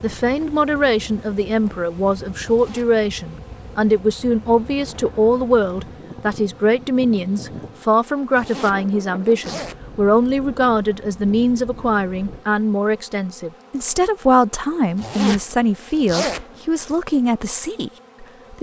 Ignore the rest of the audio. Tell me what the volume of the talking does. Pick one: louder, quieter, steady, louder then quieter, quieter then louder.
steady.